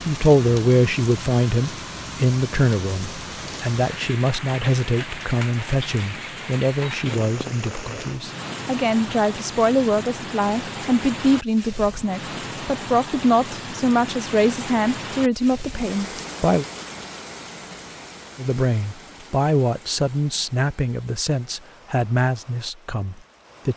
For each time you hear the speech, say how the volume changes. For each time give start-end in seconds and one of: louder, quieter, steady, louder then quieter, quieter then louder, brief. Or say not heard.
0.0-16.6 steady
18.4-23.7 quieter.